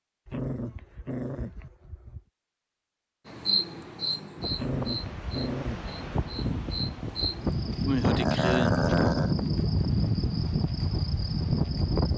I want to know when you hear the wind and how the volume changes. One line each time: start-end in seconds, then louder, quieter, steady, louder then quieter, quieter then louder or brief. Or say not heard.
4.3-12.1 louder then quieter.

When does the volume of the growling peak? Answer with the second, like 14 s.
9 s.